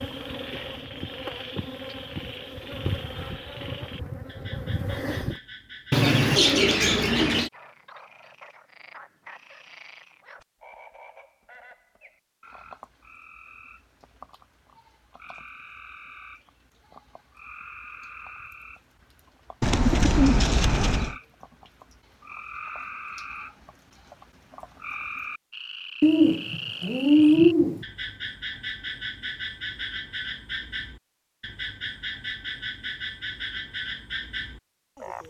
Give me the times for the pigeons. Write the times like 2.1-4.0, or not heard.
5.9-7.5, 19.6-21.1, 26.0-27.9.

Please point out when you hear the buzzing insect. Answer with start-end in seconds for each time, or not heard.
0.0-5.4.